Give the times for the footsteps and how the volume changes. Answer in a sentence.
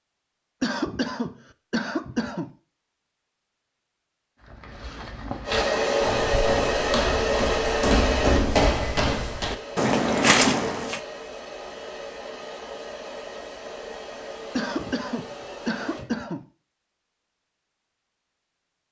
The footsteps can be heard from 4.5 to 11.0 s, getting louder.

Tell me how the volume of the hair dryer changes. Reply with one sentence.
The loudness of the hair dryer goes down.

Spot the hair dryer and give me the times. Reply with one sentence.
The hair dryer can be heard from 5.5 to 16.1 s.